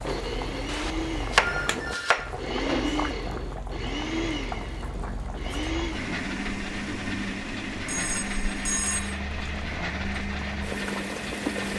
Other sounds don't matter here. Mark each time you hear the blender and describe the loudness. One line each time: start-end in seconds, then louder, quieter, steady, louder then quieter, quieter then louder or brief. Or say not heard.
0.0-11.7 steady.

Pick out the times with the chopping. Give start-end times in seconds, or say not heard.
0.7-2.3.